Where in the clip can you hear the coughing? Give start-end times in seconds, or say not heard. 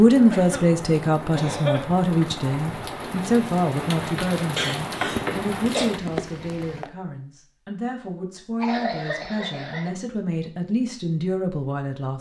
0.3-1.9, 4.5-5.9, 8.6-9.9.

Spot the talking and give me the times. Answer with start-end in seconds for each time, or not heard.
0.0-12.1.